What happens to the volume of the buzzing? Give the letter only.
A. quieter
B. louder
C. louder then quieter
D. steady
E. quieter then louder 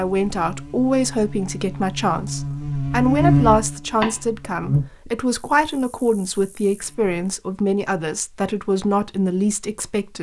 C.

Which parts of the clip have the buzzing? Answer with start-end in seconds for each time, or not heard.
0.0-7.2.